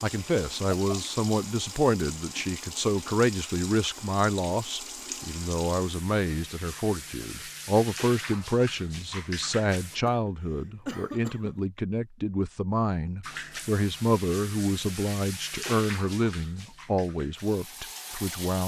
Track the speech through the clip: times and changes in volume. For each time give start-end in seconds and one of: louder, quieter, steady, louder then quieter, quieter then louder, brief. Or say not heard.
0.0-18.6 steady.